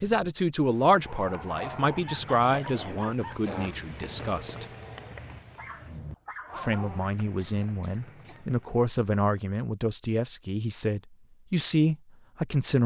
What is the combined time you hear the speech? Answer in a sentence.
The speech can be heard for 11 seconds in total.